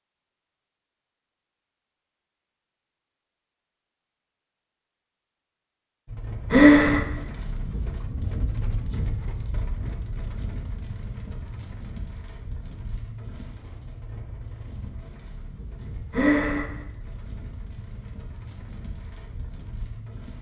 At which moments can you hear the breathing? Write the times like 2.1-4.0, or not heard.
6.5-7.0, 16.1-16.6.